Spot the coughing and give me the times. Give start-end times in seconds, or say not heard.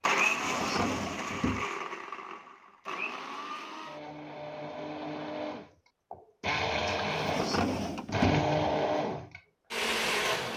not heard.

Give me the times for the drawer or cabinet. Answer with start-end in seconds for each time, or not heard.
0.2-1.6, 7.0-8.5.